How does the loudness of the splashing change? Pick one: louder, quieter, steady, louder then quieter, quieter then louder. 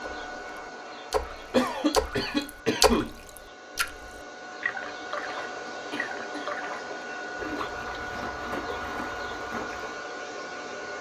quieter.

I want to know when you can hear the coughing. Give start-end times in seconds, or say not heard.
1.5-3.1, 5.7-6.5.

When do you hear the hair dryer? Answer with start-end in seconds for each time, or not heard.
0.0-10.9.